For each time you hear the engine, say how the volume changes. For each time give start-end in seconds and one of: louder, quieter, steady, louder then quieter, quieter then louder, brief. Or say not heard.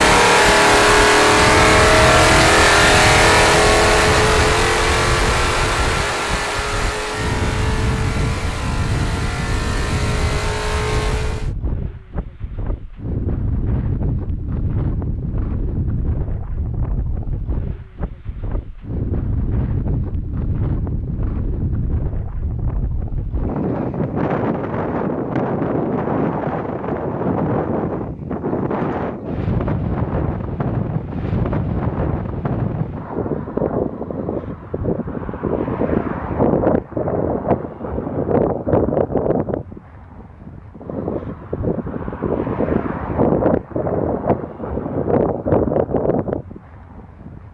0.0-11.5 quieter.